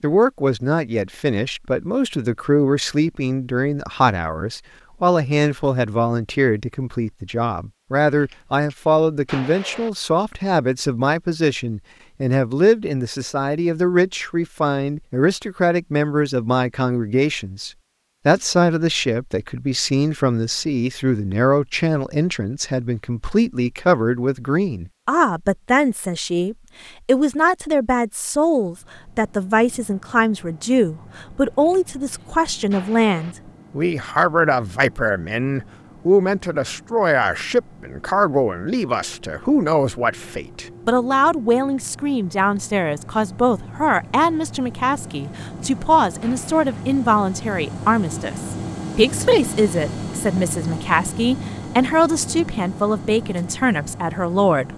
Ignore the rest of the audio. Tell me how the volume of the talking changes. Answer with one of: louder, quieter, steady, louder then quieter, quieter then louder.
steady.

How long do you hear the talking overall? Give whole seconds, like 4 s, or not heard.
55 s.